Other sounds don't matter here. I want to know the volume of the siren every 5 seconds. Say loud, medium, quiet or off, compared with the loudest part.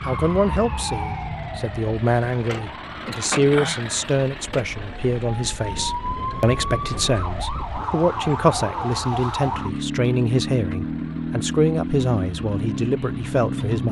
medium, loud, loud.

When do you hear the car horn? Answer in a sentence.
The car horn can't be heard in this clip.